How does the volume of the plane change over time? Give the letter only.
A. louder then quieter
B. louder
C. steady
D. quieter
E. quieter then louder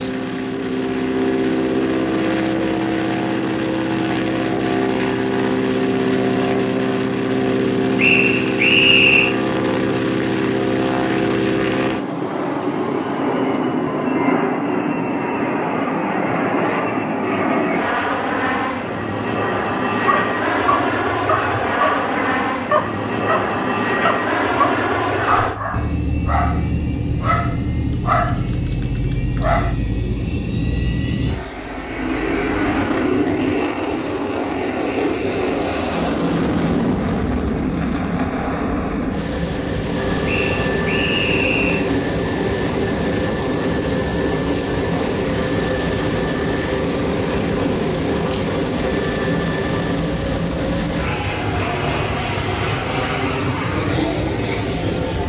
C.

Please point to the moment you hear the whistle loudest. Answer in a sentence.
The volume of the whistle peaks at 9 seconds.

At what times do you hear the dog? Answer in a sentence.
You can hear the dog from 20.0 to 29.8 s.